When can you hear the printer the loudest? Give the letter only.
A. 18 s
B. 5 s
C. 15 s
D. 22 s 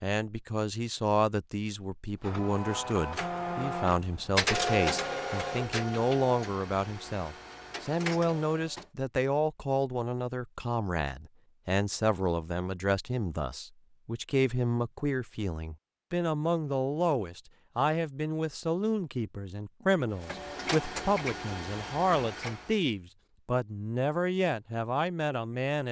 B.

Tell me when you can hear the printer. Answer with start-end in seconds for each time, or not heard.
2.2-8.8, 20.2-22.7.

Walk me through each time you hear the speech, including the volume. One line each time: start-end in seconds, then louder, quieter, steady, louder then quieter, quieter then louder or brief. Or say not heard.
0.0-25.8 steady.